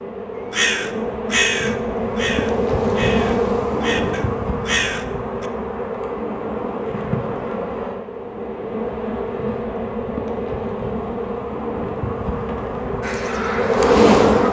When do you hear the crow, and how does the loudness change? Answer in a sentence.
You can hear the crow from 0.5 to 5.5 s, getting quieter then louder; and briefly from 13.0 to 14.4 s.